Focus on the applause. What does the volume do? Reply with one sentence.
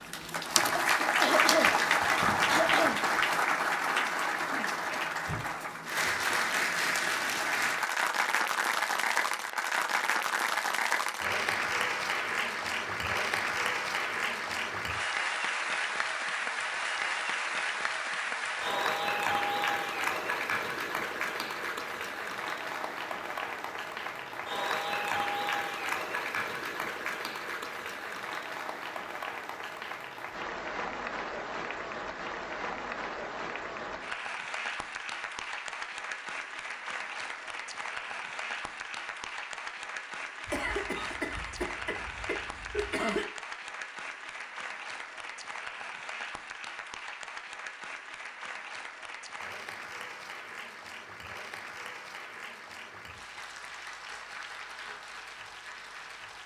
The loudness of the applause goes down.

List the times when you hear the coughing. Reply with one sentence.
You can hear the coughing from 1.2 to 3.0 s and from 40.5 to 43.2 s.